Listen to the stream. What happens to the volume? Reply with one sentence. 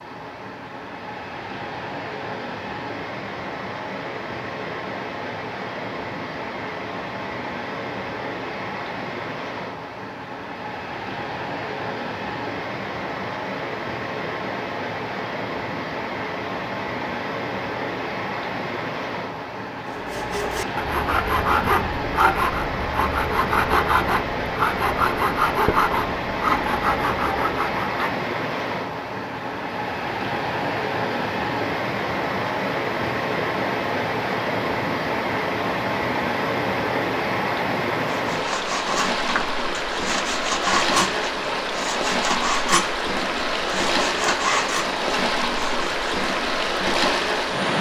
The volume of the stream goes up.